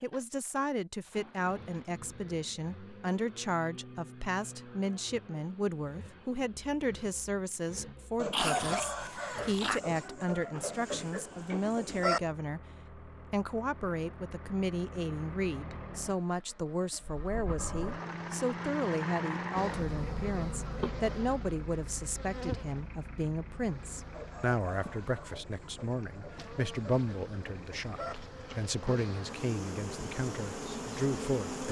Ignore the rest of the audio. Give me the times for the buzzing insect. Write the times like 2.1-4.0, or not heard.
19.6-31.6.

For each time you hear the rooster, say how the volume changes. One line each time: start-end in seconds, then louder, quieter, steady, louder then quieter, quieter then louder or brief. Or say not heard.
8.2-12.2 quieter
24.1-28.1 quieter.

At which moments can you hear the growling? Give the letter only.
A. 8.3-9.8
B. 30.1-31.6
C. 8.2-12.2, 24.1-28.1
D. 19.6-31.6
A.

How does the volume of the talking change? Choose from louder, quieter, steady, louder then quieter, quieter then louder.
steady.